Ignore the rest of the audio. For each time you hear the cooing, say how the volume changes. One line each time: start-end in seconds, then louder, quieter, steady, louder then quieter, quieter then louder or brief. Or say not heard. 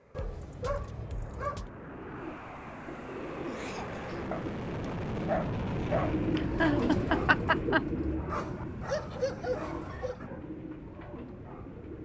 2.0-12.0 louder then quieter.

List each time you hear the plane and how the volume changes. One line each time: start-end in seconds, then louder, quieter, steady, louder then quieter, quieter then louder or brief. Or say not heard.
0.0-12.0 louder then quieter.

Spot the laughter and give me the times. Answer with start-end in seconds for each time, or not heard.
3.5-4.0, 6.3-7.8.